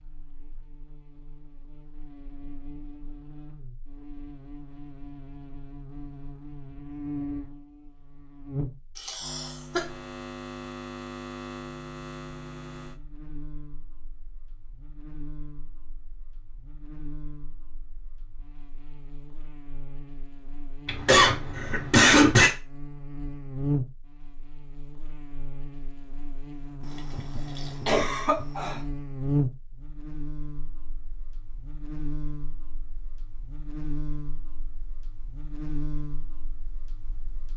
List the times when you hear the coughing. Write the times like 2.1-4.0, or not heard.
8.9-9.8, 20.9-22.5, 27.1-28.8.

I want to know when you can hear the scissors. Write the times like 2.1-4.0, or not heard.
not heard.